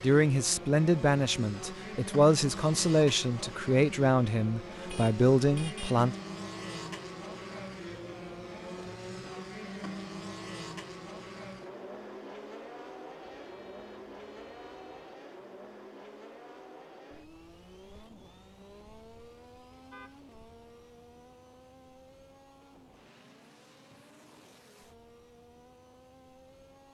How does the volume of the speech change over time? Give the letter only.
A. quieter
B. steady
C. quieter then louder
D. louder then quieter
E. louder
B.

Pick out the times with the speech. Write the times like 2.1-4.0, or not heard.
0.0-6.2.